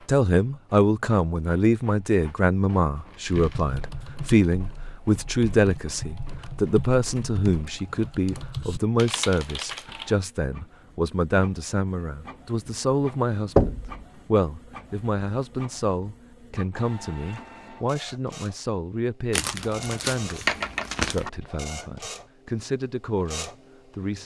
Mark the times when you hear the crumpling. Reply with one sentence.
You can hear the crumpling from 3.0 to 3.7 s and from 19.3 to 21.3 s.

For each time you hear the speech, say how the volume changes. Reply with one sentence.
You can hear the speech from 0.1 to 24.2 s, getting quieter.